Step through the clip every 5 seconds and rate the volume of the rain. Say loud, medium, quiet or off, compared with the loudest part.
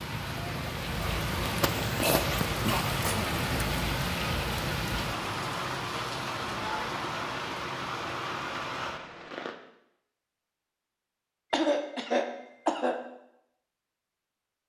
loud, loud, off.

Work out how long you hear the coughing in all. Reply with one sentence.
You can hear the coughing for 3 seconds altogether.